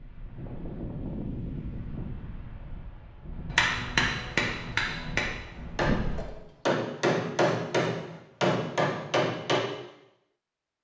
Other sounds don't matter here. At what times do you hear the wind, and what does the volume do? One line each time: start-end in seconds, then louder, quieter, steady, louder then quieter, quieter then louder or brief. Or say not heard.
0.0-6.2 quieter.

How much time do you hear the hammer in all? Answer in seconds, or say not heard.
6 s.